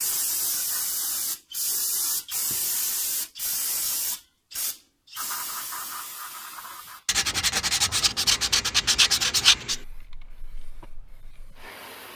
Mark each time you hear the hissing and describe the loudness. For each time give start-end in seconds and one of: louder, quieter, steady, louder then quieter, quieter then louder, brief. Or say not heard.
0.0-12.1 quieter.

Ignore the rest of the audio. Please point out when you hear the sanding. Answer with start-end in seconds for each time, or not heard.
7.0-9.8.